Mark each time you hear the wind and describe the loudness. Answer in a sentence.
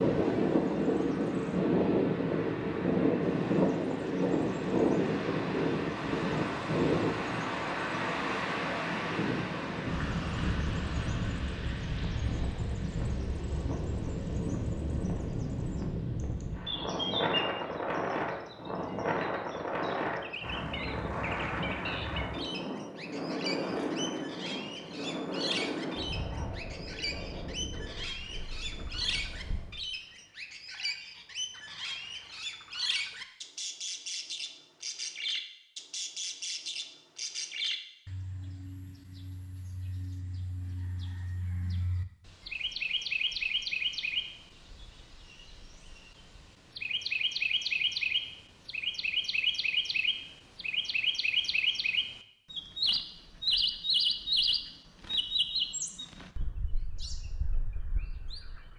The wind can be heard from 0.0 to 29.8 s, getting quieter.